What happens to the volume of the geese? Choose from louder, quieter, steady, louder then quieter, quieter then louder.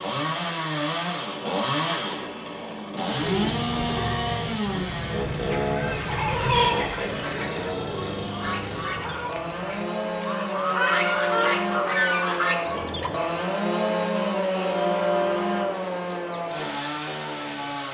louder.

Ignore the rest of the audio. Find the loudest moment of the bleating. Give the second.
7 s.